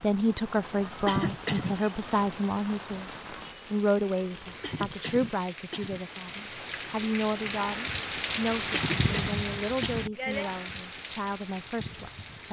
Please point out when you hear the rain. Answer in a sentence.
You can hear the rain from 0.0 to 12.4 s.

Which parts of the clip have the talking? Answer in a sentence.
You can hear the talking from 0.0 to 12.4 s.